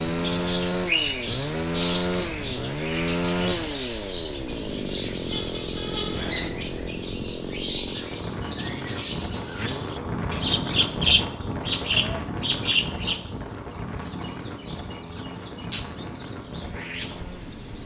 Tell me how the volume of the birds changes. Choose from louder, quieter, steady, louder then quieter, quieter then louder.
quieter.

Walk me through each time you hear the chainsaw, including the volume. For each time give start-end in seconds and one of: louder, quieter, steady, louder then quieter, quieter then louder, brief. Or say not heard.
0.0-17.6 quieter.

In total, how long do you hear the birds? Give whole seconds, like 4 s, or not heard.
18 s.